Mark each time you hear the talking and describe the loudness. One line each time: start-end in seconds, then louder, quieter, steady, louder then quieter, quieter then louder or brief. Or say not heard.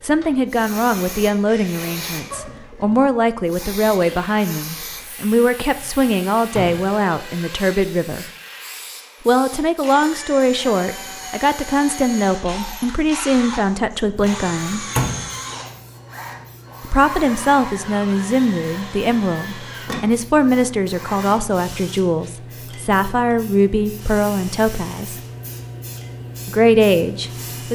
0.0-8.2 steady
9.2-14.8 steady
16.8-25.2 steady
26.4-27.7 brief.